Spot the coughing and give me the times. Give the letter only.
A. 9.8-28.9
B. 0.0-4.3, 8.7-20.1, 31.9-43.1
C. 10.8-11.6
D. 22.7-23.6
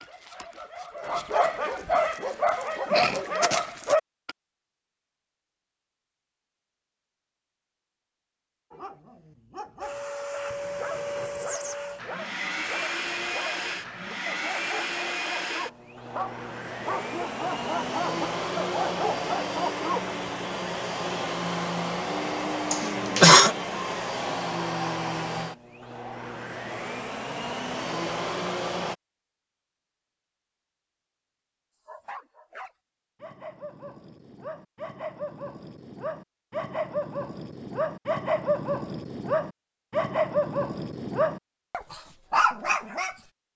D.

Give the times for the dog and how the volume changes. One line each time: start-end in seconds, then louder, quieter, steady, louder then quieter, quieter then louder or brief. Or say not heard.
0.0-4.3 louder
8.7-20.1 louder
31.9-43.1 louder.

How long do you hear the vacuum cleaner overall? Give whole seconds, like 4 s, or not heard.
19 s.